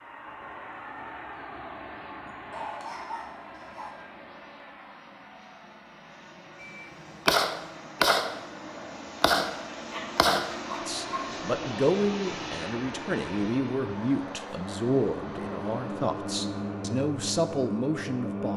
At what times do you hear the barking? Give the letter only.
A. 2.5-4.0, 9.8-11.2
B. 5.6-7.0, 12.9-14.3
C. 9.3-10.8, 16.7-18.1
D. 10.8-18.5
A.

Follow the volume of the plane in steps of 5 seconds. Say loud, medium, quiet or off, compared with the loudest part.
medium, medium, loud, loud.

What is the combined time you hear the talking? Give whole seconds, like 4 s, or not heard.
8 s.